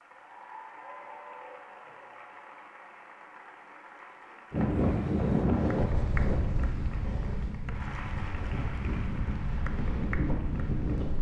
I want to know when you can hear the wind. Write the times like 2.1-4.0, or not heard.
4.5-11.1.